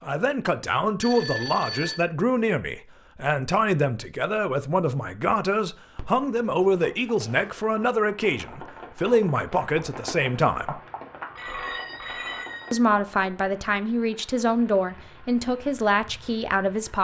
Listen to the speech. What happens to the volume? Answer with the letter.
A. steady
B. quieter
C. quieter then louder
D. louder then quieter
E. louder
A.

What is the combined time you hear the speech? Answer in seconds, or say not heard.
15 s.